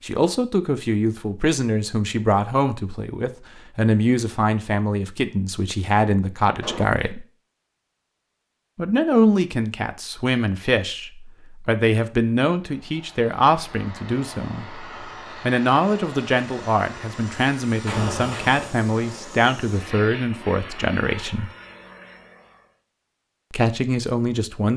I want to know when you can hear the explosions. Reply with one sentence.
You can hear the explosions from 6.6 to 7.0 s and from 17.9 to 18.8 s.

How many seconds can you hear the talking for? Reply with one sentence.
You can hear the talking for 21 seconds altogether.